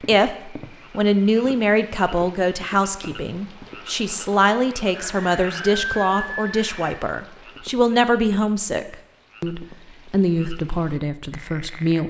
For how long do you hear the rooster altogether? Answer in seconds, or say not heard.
2 s.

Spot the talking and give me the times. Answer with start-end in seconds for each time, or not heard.
0.1-12.0.